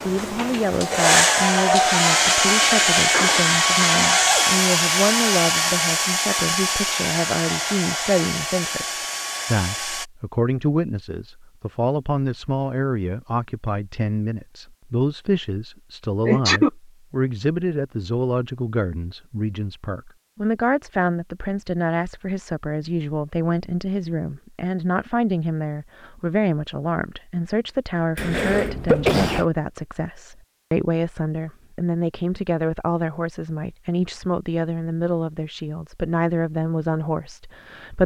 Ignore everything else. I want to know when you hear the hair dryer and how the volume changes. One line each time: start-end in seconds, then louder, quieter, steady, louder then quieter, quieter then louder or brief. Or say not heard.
0.0-10.1 quieter.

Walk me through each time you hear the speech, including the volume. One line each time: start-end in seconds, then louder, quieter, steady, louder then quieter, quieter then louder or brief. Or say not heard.
0.0-38.0 steady.